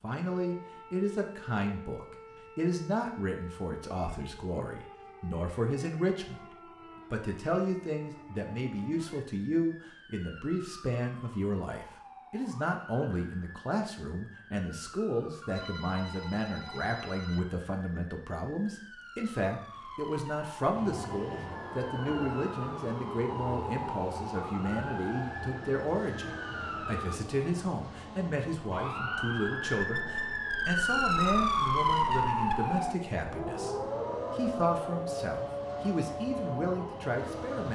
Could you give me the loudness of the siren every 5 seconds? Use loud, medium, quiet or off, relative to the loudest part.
quiet, quiet, quiet, quiet, quiet, medium, loud, medium.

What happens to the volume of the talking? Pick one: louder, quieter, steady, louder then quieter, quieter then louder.
steady.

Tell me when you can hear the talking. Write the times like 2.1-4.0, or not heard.
0.0-6.5, 7.1-33.8, 34.4-37.6.